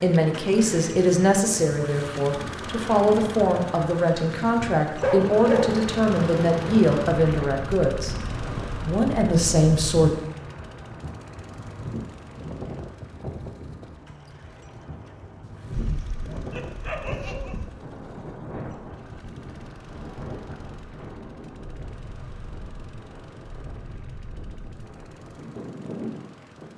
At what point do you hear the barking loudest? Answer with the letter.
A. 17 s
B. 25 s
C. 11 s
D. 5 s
D.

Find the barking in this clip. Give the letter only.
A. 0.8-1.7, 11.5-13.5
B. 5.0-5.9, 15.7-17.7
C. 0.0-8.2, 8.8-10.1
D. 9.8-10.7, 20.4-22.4
B.